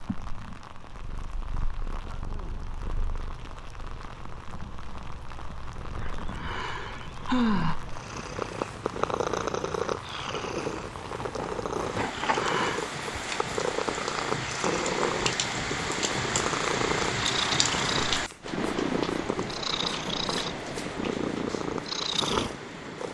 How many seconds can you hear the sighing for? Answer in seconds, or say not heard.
3 s.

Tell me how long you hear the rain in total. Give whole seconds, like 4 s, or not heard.
23 s.